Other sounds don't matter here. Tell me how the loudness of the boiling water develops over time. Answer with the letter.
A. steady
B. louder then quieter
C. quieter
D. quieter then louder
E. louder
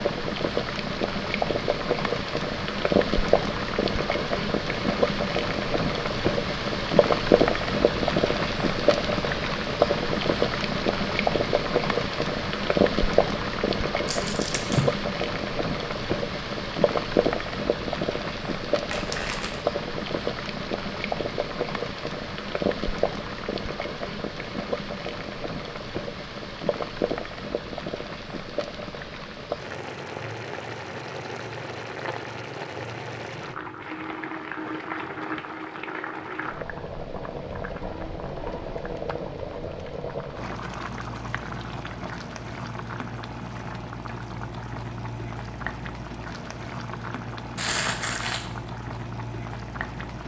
C.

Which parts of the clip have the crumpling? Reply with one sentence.
You can hear the crumpling from 14.1 to 14.9 s, from 18.9 to 19.6 s and from 47.5 to 48.5 s.